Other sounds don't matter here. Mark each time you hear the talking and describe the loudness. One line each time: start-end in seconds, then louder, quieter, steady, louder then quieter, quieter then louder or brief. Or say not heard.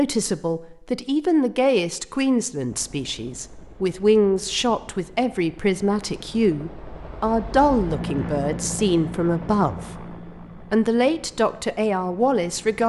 0.0-12.8 steady.